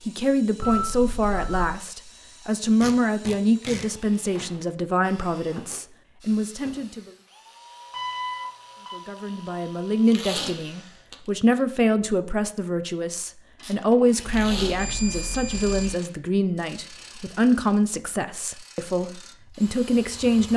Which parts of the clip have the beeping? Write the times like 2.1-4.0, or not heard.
0.6-1.7, 7.9-9.0, 14.2-15.9.